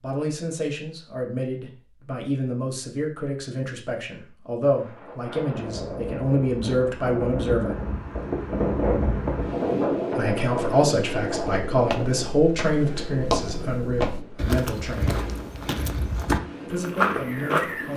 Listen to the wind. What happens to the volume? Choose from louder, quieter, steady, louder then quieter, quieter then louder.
louder then quieter.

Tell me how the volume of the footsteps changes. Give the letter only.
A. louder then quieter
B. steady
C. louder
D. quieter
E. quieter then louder
C.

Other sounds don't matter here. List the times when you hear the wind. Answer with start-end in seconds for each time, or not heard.
4.7-17.7.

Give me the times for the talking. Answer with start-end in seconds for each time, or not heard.
0.0-7.8, 10.2-15.2, 16.7-17.9.